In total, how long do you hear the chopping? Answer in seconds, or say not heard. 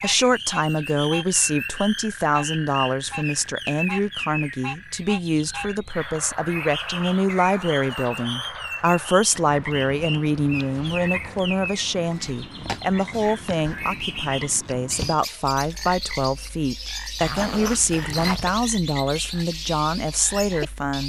not heard.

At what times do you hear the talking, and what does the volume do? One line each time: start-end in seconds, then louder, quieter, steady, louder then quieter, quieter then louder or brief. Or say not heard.
0.0-21.0 steady.